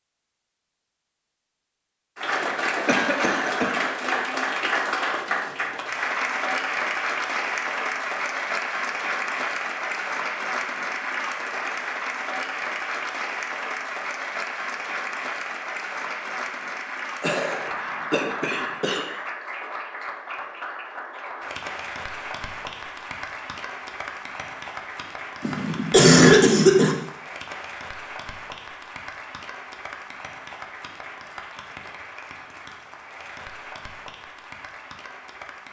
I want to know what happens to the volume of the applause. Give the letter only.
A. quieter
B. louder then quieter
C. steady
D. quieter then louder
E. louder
A.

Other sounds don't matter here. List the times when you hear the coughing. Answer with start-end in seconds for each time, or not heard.
2.9-3.8, 17.2-19.1, 25.4-26.9.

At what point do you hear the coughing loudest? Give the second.
26 s.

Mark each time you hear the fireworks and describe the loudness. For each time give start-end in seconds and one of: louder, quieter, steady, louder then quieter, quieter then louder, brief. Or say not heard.
not heard.